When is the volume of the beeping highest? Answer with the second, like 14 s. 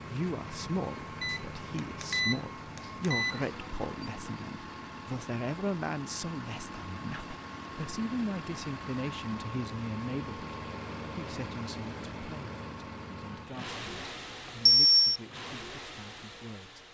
15 s.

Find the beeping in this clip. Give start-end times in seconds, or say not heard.
1.2-3.5, 13.6-15.2.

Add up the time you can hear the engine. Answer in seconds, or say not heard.
17 s.